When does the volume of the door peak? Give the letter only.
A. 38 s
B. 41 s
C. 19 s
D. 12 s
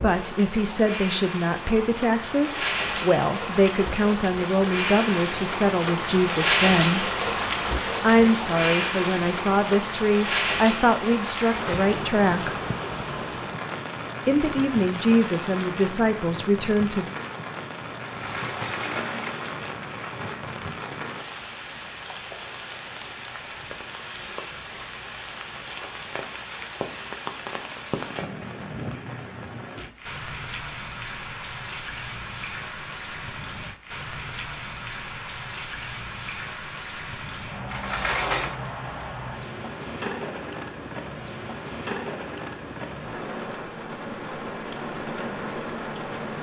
A.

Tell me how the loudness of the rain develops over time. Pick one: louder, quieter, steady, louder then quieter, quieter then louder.
quieter.